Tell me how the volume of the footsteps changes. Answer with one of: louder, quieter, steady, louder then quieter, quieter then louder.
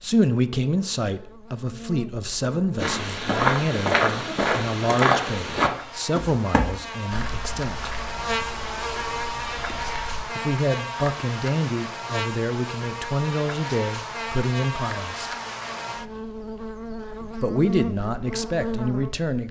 quieter.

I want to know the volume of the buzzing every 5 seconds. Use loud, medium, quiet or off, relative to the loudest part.
medium, loud, loud, loud.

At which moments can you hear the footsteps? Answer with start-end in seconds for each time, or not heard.
2.8-10.2.